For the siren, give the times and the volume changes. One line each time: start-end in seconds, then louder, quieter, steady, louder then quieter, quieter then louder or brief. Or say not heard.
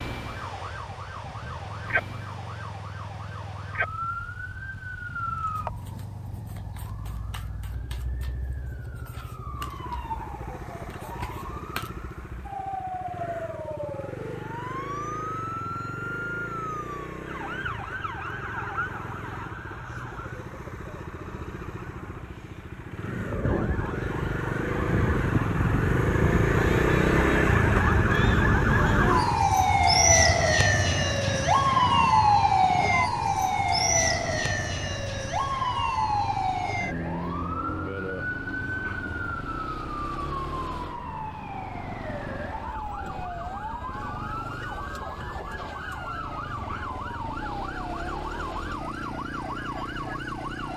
0.0-50.7 louder then quieter.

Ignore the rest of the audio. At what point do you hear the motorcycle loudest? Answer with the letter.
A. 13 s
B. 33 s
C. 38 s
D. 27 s
D.